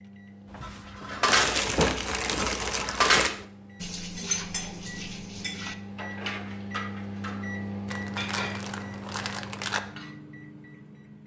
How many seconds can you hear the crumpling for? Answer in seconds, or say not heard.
4 s.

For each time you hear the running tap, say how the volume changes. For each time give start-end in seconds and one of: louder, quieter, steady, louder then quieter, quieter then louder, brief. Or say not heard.
not heard.